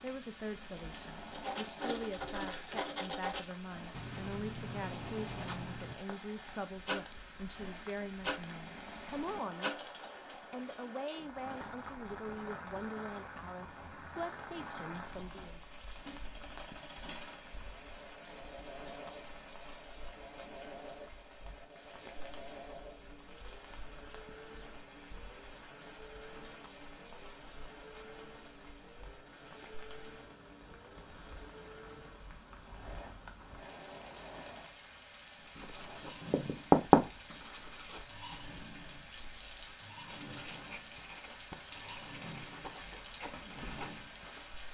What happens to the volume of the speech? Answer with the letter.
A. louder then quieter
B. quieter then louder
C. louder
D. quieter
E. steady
E.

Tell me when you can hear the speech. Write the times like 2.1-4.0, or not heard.
0.0-9.8, 10.5-15.6.